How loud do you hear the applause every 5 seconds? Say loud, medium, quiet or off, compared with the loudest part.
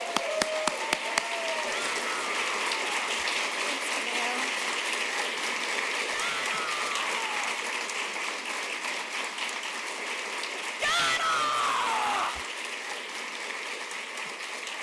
loud, loud, medium.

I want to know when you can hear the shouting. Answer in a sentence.
The shouting can be heard from 1.6 to 3.2 s, from 6.1 to 7.6 s and from 10.8 to 12.4 s.